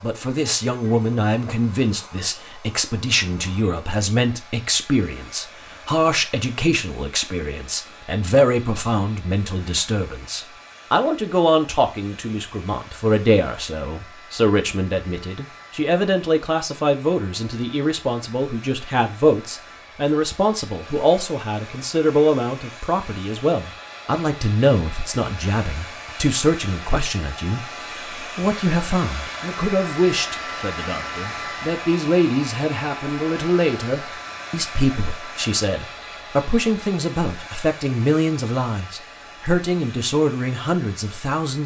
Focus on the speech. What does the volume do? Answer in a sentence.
The volume of the speech stays about the same.